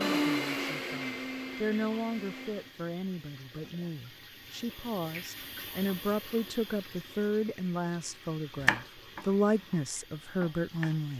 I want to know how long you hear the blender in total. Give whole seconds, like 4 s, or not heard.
3 s.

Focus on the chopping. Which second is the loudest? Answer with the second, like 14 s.
9 s.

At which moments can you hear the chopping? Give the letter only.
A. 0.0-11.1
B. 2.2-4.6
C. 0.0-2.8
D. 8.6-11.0
D.